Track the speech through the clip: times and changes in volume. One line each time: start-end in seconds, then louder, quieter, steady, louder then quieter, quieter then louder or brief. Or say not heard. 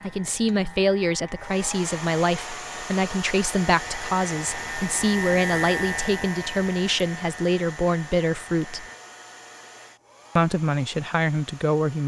0.0-8.8 steady
10.3-12.0 brief.